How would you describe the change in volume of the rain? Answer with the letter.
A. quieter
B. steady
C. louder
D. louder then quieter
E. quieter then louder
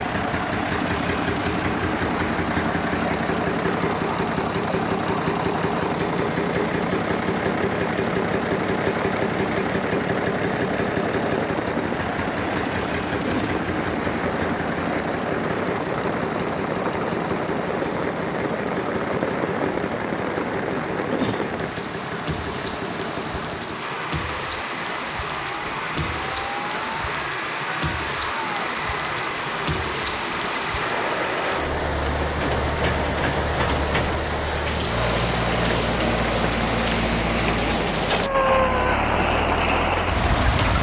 C.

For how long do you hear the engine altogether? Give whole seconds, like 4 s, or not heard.
41 s.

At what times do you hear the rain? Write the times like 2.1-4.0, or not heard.
0.0-40.7.